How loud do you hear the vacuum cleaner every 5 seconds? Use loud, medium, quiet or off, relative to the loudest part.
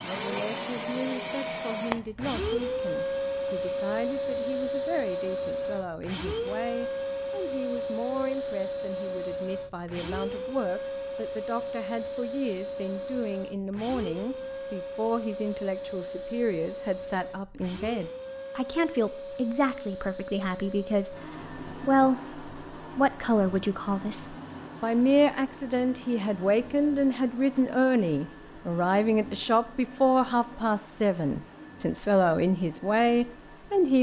loud, loud, medium, medium, medium, quiet, quiet.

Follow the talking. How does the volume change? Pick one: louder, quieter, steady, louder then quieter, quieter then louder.
louder.